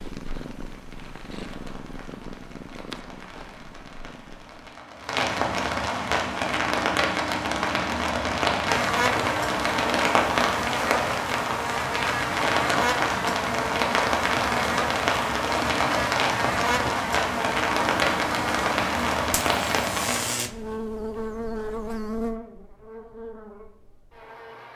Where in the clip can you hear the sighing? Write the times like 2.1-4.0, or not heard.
not heard.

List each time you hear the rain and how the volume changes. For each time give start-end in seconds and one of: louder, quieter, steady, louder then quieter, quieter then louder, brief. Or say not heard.
0.1-20.4 louder.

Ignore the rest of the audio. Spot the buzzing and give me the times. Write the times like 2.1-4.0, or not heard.
8.7-24.7.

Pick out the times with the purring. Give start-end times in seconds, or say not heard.
0.0-4.8.